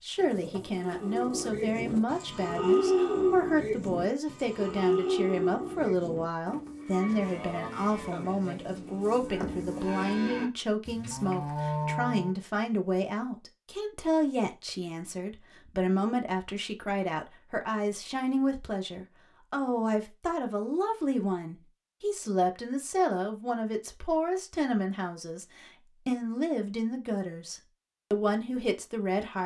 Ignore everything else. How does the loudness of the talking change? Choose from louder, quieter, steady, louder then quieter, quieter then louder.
steady.